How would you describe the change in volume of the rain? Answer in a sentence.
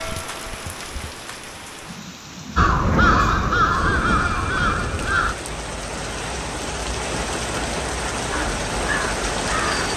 The volume of the rain goes up.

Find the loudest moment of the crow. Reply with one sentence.
The loudest moment of the crow is at 3 seconds.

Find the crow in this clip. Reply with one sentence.
You can hear the crow from 2.5 to 5.3 s and from 8.3 to 9.9 s.